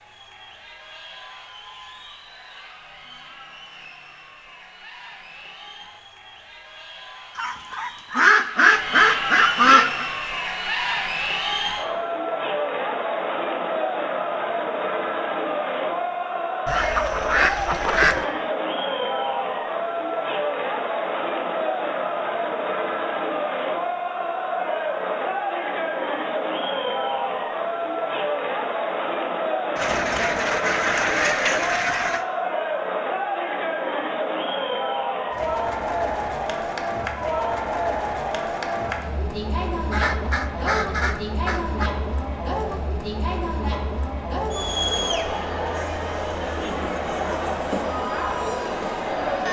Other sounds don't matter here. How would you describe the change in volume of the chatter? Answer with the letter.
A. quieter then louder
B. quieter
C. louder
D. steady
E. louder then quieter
C.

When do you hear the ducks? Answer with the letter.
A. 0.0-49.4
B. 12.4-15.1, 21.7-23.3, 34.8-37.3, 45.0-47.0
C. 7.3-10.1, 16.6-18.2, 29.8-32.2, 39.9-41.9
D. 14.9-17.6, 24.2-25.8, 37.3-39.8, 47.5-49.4
C.